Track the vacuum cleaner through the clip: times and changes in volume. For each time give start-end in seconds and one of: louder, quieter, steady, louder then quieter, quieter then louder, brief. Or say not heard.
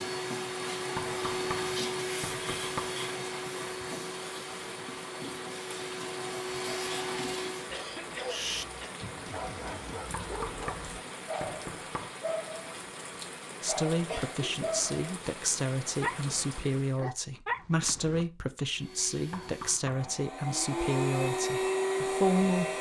0.0-7.8 quieter then louder
18.7-22.7 louder.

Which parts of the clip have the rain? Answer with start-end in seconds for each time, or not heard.
0.0-17.1.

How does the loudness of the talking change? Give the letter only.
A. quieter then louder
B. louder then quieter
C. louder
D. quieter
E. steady
E.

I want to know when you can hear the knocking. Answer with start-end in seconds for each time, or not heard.
0.9-3.0, 10.1-12.1, 19.3-20.1.